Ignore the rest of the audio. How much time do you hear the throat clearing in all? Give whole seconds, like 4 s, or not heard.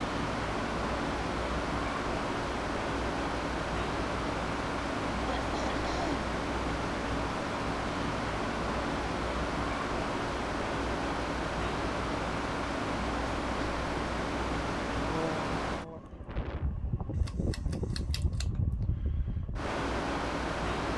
3 s.